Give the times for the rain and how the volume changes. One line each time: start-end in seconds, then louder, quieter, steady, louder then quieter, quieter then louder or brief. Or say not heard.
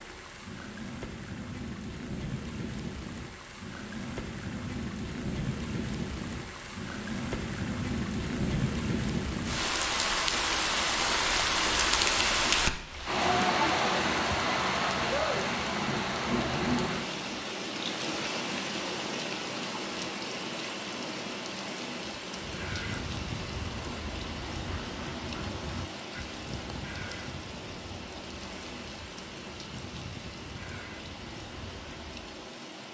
0.0-32.8 louder then quieter.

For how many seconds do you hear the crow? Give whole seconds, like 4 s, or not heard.
10 s.